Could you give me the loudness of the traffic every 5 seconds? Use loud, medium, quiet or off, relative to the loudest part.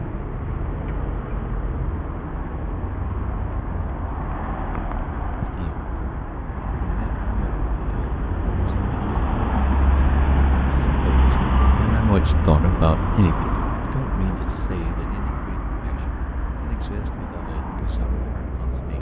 medium, loud, loud, medium.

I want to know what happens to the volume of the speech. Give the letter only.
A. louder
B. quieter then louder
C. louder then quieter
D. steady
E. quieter
C.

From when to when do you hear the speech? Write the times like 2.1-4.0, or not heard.
5.3-18.9.